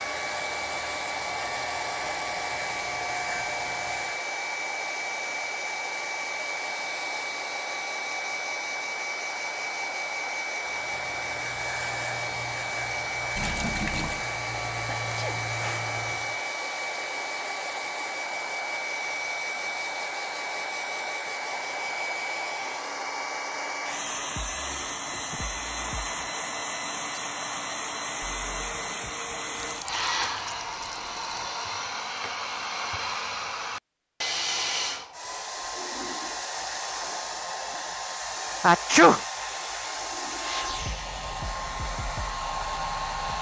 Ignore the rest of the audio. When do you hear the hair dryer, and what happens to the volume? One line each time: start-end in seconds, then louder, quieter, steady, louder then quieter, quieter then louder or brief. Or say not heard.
0.0-43.3 steady.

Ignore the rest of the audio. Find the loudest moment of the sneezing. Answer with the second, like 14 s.
39 s.